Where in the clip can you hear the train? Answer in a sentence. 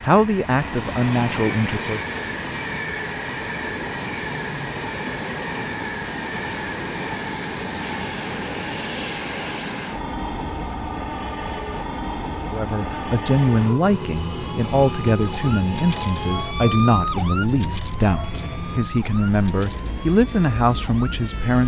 You can hear the train from 0.0 to 21.6 s.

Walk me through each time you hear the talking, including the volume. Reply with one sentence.
The talking can be heard briefly from 0.0 to 2.0 s; and from 12.5 to 21.6 s, at a steady volume.